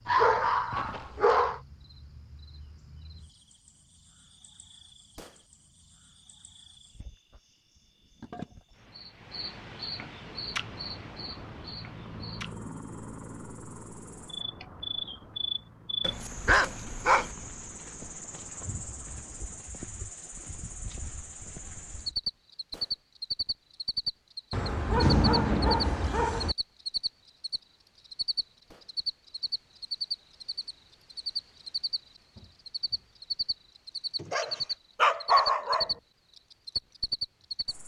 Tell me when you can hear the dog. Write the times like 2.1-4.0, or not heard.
0.1-1.6, 16.0-17.3, 24.5-26.6, 34.2-35.9.